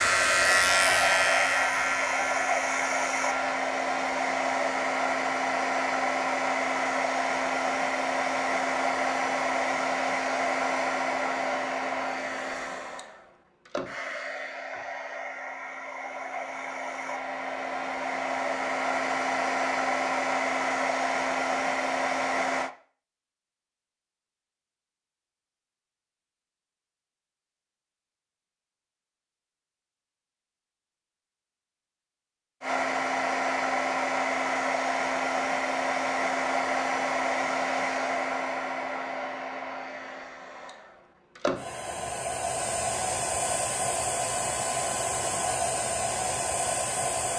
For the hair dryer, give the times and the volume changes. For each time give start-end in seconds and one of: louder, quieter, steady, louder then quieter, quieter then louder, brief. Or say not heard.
0.0-22.7 quieter then louder
32.6-47.3 quieter then louder.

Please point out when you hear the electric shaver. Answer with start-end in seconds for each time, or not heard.
0.0-3.5.